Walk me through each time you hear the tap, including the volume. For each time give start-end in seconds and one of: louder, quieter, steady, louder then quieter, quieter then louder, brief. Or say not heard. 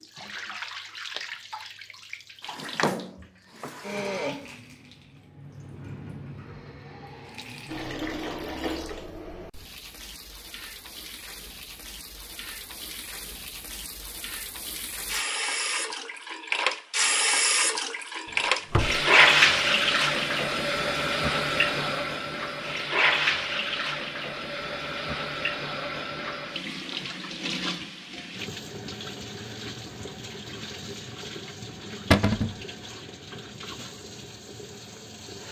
0.0-35.4 louder then quieter.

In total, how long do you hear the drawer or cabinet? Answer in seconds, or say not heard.
3 s.